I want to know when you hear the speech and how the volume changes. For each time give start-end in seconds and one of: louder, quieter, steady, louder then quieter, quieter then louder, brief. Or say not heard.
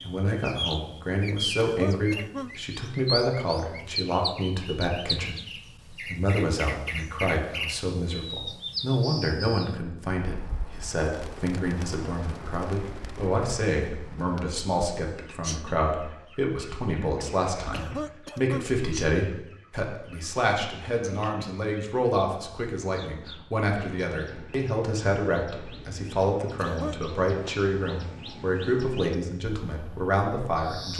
0.0-30.9 steady.